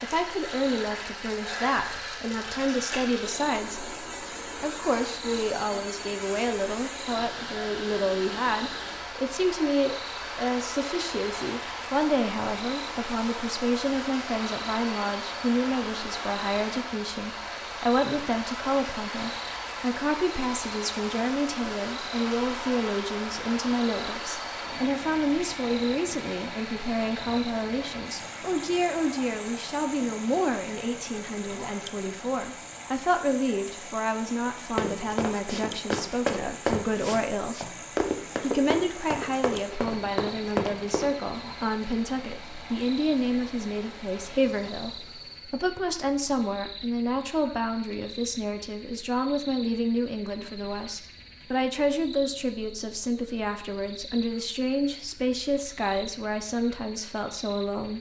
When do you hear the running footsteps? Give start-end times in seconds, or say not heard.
34.8-41.1.